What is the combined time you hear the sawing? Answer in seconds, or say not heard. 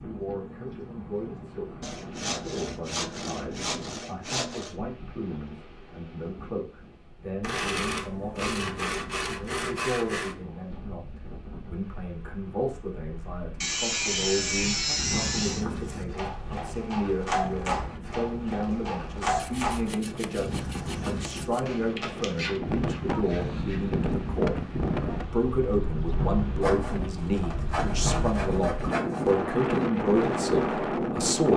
13 s.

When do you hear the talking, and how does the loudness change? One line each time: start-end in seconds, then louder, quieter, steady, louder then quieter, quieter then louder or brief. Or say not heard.
0.0-31.5 louder.